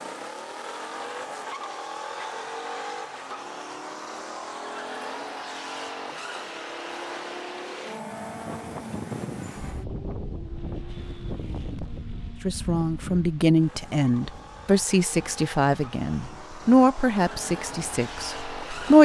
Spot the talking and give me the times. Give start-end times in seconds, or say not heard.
12.4-18.9.